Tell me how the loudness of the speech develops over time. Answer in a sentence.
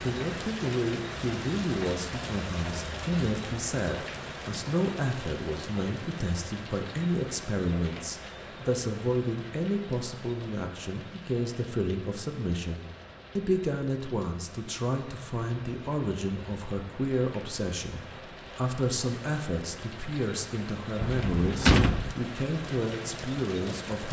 The volume of the speech stays about the same.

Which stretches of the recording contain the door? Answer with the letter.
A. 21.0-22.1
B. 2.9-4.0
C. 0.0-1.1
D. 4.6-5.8
A.